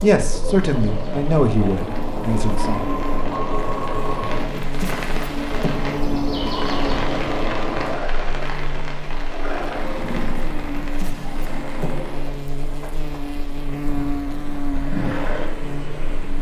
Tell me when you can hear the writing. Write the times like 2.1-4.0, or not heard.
not heard.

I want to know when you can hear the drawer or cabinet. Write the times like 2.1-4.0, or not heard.
4.6-5.8, 10.8-12.0.